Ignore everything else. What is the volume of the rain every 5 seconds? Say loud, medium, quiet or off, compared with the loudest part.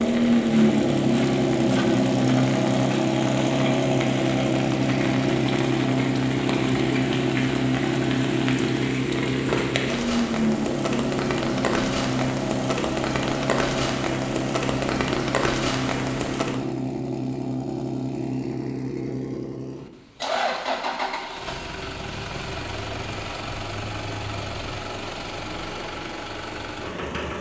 medium, loud, loud, loud, off, off.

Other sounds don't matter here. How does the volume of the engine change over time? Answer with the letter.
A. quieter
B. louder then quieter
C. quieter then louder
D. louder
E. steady
A.